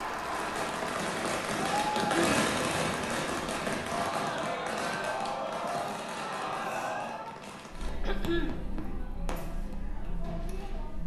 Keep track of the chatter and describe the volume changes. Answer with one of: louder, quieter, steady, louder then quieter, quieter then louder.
quieter.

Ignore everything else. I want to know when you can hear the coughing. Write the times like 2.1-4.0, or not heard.
1.9-2.5, 8.0-8.6.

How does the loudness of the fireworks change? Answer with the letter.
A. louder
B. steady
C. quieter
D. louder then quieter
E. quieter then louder
C.